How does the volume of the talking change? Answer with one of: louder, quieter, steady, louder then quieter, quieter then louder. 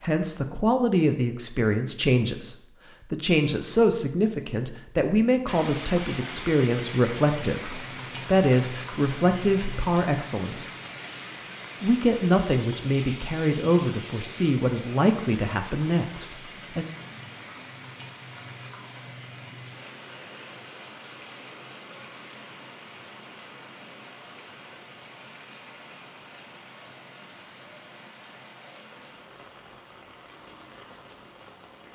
steady.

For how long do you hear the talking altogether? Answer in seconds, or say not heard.
16 s.